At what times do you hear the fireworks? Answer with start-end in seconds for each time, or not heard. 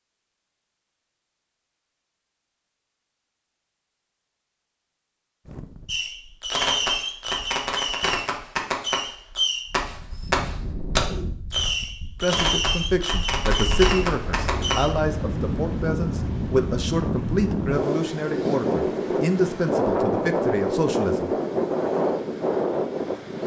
5.8-14.9.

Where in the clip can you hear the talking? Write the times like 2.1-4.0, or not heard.
12.2-21.4.